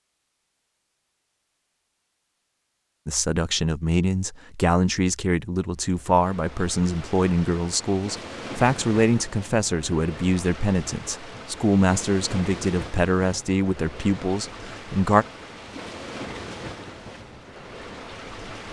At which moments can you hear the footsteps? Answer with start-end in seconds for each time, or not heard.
not heard.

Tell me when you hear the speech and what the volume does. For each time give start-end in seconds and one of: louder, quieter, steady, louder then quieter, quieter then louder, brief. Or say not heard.
3.0-15.2 steady.